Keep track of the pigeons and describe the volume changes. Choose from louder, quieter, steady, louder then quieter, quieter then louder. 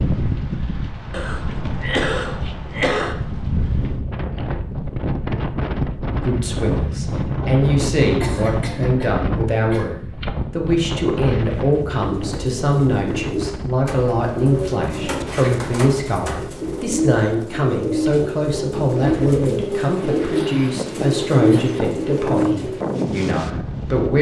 louder.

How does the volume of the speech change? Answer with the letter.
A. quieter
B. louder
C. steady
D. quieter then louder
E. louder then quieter
C.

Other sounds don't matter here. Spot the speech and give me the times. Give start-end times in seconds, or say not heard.
6.2-24.1.